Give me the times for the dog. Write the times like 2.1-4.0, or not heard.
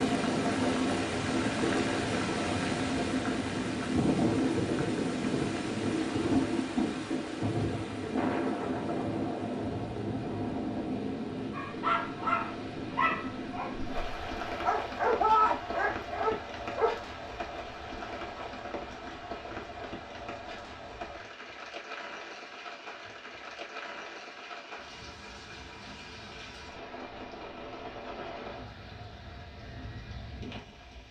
11.5-16.9.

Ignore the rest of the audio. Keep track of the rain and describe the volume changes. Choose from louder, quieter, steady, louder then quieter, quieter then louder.
quieter.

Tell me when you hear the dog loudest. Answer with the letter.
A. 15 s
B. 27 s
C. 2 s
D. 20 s
A.